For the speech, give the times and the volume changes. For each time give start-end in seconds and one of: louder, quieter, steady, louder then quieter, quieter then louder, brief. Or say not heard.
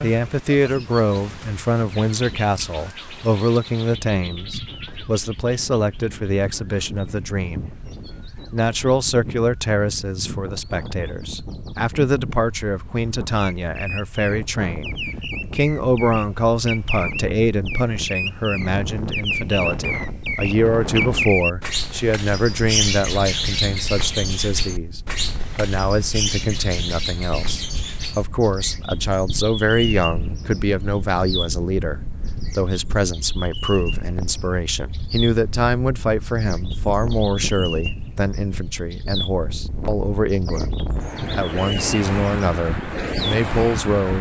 0.0-44.1 steady.